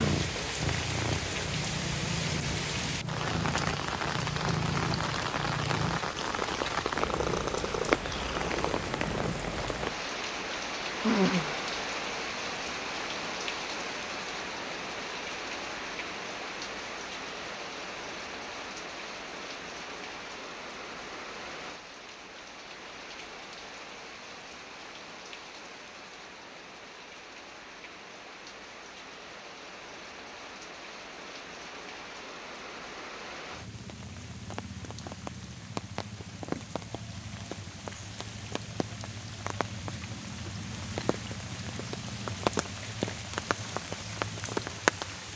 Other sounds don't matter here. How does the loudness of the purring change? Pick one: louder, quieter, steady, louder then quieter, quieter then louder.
steady.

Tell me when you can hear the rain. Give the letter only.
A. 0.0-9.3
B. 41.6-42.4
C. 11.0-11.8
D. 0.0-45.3
D.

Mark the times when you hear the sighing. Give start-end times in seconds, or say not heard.
11.0-11.8.